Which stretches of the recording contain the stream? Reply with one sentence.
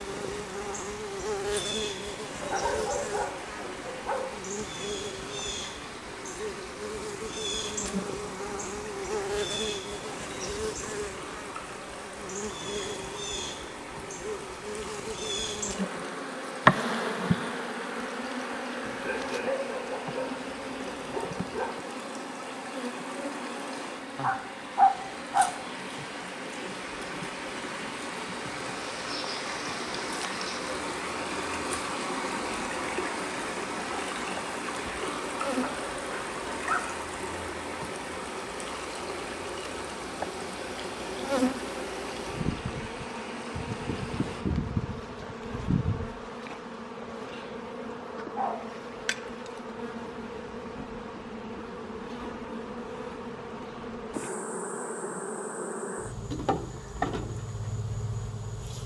The stream can be heard from 0.0 to 44.5 s.